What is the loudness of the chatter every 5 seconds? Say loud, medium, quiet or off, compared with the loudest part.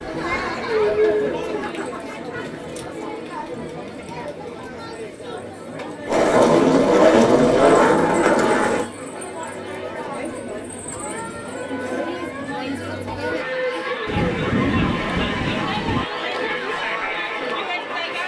loud, medium, loud, loud.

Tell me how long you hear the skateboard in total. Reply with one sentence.
The skateboard can be heard for 3 seconds in total.